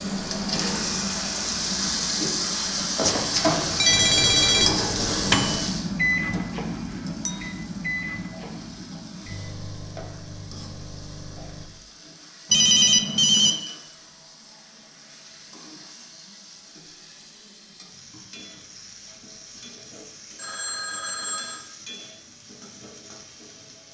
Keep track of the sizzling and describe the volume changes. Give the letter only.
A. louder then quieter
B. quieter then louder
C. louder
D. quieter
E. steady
D.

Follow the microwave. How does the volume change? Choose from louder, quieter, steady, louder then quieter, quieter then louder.
quieter.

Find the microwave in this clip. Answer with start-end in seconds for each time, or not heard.
3.9-11.7.